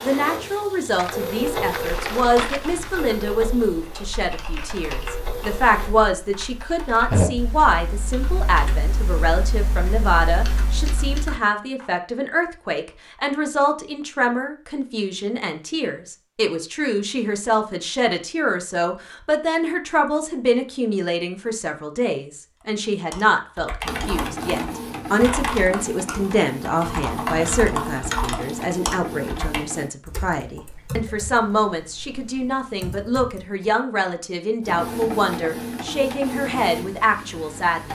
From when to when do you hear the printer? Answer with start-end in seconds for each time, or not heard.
0.0-6.0, 23.8-29.9, 34.6-37.8.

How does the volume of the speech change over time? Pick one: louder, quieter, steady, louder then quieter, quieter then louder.
steady.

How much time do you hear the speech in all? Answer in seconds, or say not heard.
38 s.